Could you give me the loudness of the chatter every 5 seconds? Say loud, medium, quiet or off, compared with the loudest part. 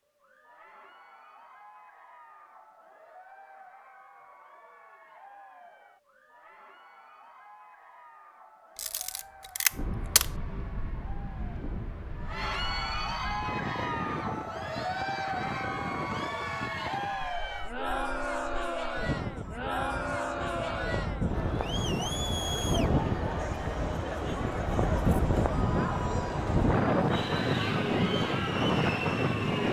quiet, quiet, loud, loud, loud, loud.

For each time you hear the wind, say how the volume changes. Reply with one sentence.
You can hear the wind from 9.7 to 29.6 s, getting louder.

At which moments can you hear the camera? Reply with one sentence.
The camera can be heard from 8.8 to 10.3 s.